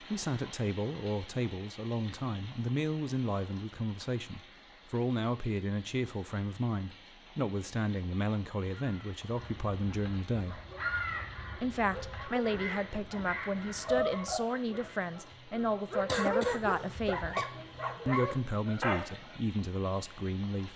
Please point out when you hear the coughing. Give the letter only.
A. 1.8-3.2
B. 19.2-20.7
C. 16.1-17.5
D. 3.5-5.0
C.